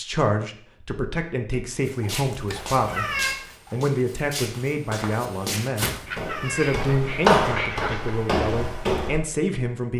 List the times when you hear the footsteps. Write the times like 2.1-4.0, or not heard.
1.7-9.2.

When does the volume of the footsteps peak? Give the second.
7 s.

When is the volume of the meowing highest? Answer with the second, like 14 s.
3 s.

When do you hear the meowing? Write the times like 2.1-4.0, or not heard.
2.5-3.4, 6.0-7.0.